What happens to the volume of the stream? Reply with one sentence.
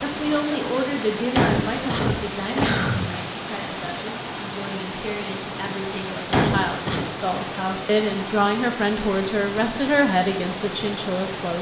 The volume of the stream stays about the same.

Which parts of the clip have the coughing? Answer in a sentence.
You can hear the coughing from 1.4 to 3.0 s and from 6.3 to 7.0 s.